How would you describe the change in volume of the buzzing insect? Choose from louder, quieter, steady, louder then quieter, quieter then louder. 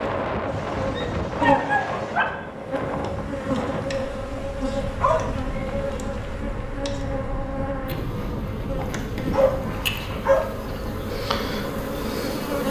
steady.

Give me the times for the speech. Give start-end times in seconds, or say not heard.
not heard.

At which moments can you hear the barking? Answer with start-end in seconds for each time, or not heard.
0.5-2.2, 4.8-6.3, 8.8-10.5.